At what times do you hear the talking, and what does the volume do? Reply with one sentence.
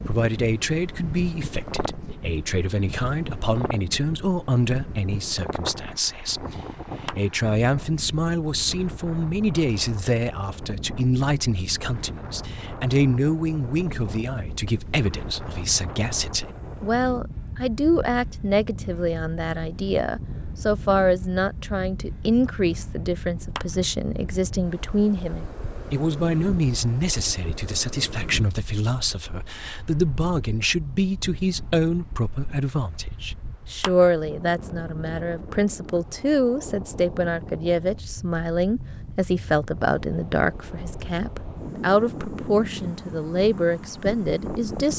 The talking can be heard from 0.1 to 44.9 s, at a steady volume.